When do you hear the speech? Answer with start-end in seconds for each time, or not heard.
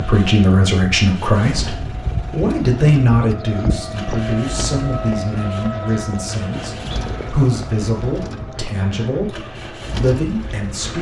0.0-10.9.